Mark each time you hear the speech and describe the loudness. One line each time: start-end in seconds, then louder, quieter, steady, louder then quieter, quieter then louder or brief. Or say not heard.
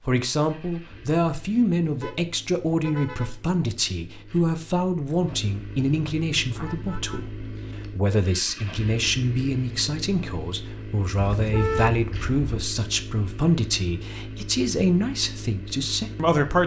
0.1-16.6 steady.